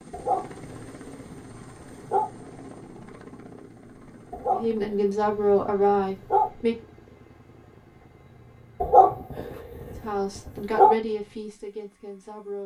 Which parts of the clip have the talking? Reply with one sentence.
The talking can be heard from 4.5 to 6.8 s and from 10.0 to 12.6 s.